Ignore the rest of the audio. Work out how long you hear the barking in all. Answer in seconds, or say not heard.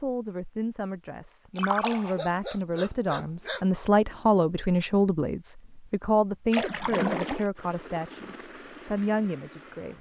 2 s.